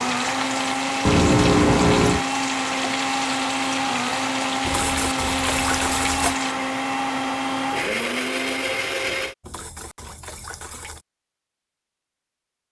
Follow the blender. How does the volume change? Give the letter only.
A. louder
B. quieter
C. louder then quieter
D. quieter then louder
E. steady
E.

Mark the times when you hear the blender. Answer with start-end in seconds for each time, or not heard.
0.0-9.3.